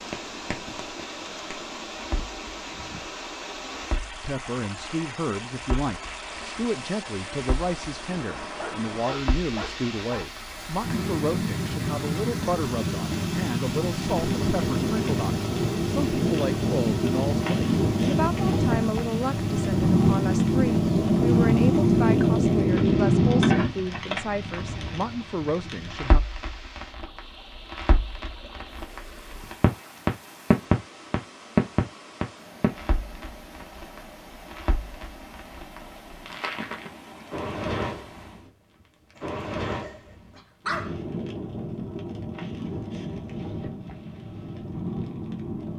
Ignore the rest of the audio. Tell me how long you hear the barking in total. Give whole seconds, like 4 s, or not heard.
3 s.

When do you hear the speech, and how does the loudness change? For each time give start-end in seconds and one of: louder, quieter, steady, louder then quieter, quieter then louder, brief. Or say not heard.
4.1-26.2 steady.